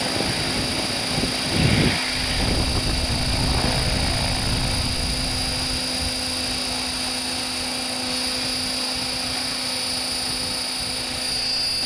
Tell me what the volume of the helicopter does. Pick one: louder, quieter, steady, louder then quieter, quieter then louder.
steady.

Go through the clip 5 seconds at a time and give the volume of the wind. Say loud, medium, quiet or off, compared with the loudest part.
loud, quiet, quiet.